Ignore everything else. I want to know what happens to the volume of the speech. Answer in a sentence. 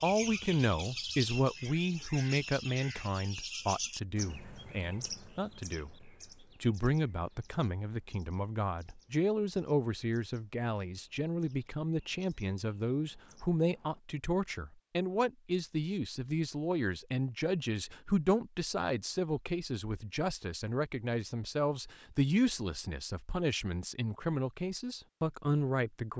The loudness of the speech stays about the same.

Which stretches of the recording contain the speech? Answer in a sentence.
The speech can be heard from 0.0 to 26.1 s.